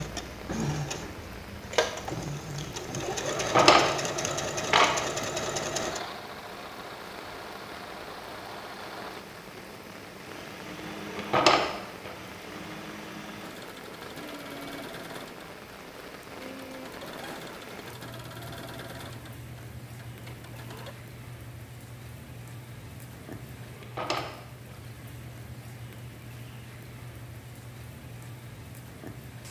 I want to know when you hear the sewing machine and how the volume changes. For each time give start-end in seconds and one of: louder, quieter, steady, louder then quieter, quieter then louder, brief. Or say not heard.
0.0-20.9 quieter.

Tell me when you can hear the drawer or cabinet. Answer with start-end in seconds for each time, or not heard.
3.2-4.9, 10.9-12.2, 23.6-24.8.